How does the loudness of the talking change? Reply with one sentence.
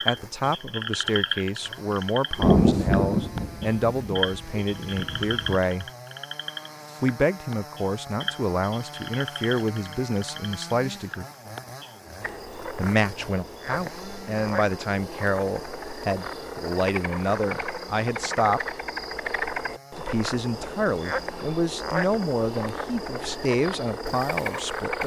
The volume of the talking stays about the same.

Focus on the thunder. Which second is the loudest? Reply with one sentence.
The loudest moment of the thunder is at 3 seconds.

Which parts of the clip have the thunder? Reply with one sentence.
The thunder can be heard from 2.4 to 5.5 s.